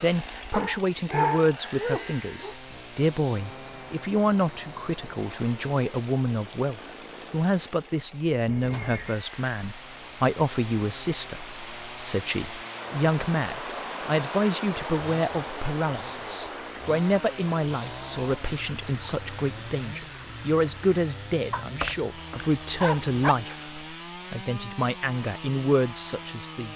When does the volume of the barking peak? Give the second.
1 s.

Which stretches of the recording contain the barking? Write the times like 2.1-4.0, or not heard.
0.5-2.5, 21.5-23.4.